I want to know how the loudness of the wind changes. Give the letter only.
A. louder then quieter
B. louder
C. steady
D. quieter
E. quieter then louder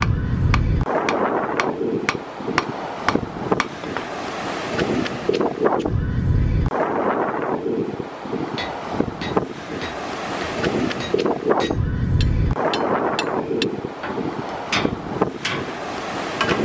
C.